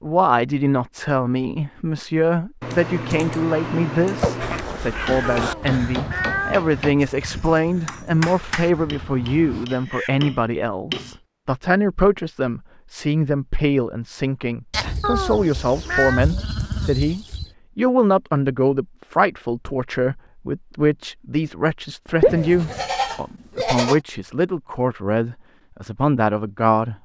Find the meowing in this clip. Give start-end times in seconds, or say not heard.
5.2-6.7, 15.0-16.2.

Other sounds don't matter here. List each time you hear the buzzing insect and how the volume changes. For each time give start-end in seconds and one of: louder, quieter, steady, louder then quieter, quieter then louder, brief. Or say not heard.
not heard.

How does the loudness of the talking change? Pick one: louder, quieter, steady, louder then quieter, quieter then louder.
steady.